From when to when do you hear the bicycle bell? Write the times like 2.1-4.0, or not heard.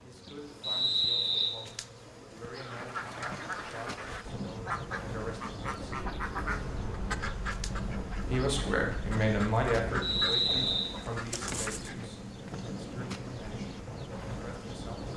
not heard.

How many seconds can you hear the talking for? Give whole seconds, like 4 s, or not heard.
13 s.